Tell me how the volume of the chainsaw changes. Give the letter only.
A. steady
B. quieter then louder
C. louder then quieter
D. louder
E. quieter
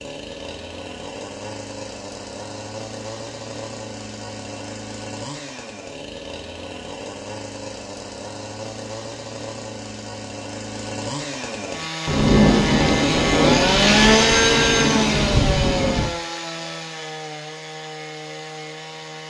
C.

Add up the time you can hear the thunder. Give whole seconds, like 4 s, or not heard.
4 s.